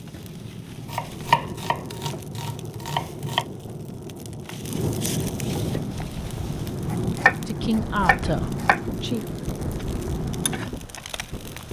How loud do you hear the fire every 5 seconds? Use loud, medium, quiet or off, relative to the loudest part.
medium, loud, loud.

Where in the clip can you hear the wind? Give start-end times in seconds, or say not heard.
5.8-11.6.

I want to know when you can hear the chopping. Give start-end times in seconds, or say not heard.
0.9-3.5, 6.9-8.8.